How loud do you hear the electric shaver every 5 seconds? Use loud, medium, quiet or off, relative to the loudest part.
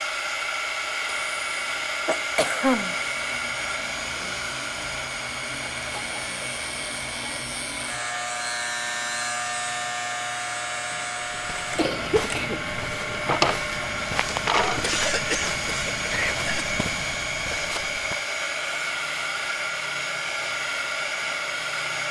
medium, loud, loud, medium, off.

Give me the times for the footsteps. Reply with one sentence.
You can hear the footsteps from 11.4 to 18.2 s.